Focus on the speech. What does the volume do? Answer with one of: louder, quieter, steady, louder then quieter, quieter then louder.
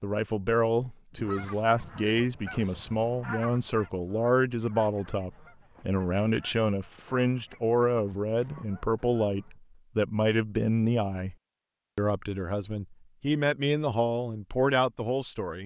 steady.